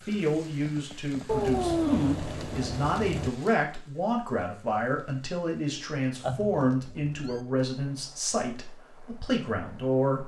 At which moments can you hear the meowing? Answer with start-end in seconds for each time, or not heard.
1.2-3.3, 6.2-7.4.